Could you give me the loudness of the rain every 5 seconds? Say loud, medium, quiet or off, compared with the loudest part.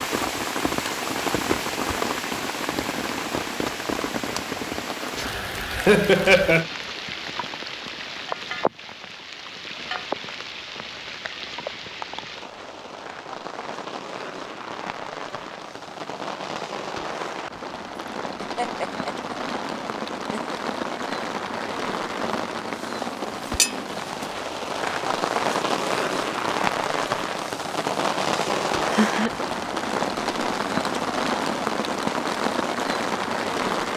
loud, medium, medium, medium, loud, loud, loud.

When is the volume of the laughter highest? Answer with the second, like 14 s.
6 s.